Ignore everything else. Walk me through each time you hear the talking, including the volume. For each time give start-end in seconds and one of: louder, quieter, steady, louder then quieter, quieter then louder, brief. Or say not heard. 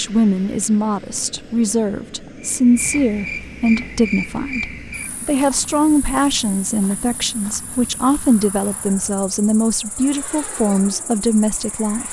0.0-12.0 steady.